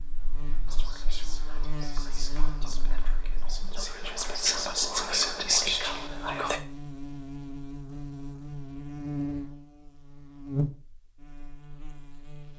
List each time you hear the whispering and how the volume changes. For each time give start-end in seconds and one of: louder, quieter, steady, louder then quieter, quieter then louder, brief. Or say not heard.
0.7-6.6 louder.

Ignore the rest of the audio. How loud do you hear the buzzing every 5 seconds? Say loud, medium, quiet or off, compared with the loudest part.
medium, loud, loud.